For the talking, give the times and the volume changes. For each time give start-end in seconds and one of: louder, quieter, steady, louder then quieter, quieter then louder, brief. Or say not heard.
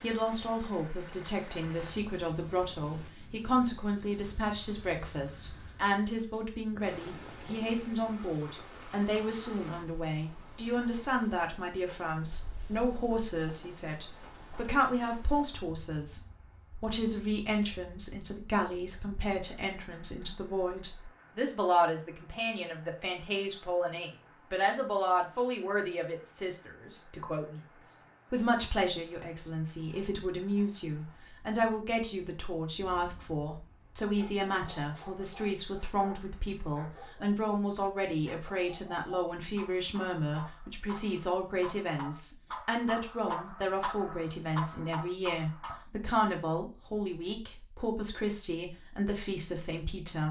0.0-50.2 steady.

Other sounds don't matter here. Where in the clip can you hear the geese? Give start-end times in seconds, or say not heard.
not heard.